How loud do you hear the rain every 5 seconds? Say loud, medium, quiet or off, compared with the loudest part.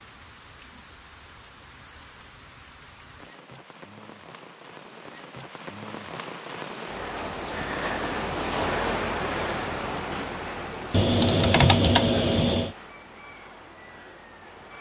quiet, loud, medium.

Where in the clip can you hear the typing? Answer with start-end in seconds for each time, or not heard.
10.9-12.8.